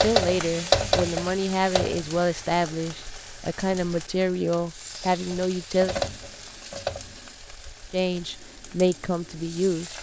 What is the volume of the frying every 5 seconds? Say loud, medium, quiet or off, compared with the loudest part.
loud, medium.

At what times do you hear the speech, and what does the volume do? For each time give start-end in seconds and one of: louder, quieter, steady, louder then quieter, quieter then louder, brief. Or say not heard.
0.0-6.0 steady
7.9-9.9 brief.